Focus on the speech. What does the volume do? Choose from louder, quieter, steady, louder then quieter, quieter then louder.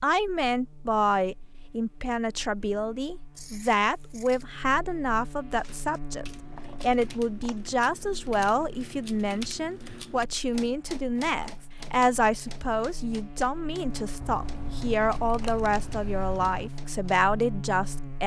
steady.